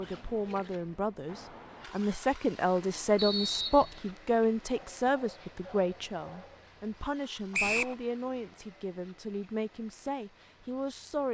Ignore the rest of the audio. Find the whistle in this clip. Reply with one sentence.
You can hear the whistle from 3.1 to 4.0 s and from 7.5 to 8.0 s.